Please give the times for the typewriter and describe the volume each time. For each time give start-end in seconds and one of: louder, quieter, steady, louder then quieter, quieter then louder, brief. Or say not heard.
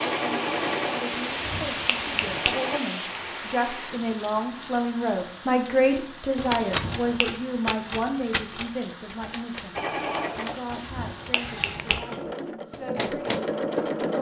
6.3-13.4 quieter.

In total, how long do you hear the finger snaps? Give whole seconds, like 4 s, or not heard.
3 s.